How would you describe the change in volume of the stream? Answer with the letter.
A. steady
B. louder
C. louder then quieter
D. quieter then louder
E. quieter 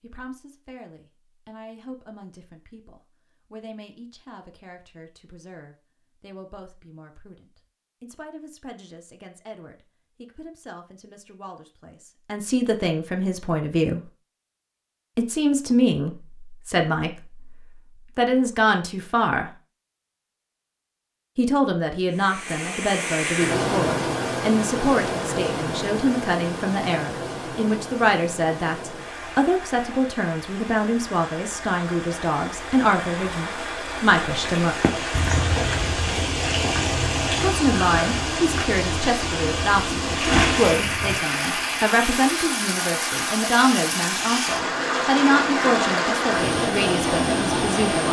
D.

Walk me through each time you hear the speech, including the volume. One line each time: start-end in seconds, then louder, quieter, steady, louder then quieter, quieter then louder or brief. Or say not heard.
0.0-14.0 louder
15.2-17.5 brief
18.1-19.5 brief
21.4-34.8 steady
37.4-48.0 steady.